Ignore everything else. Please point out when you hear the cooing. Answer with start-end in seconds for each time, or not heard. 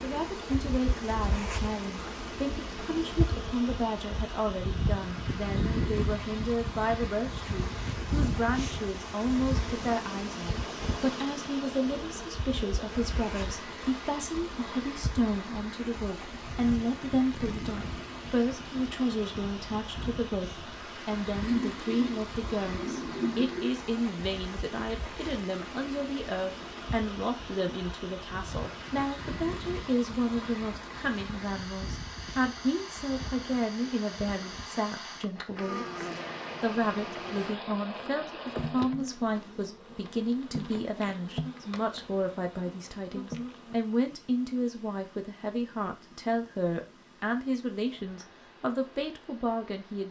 21.4-23.6.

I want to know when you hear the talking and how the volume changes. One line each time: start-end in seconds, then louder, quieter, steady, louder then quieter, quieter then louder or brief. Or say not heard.
0.0-50.0 steady.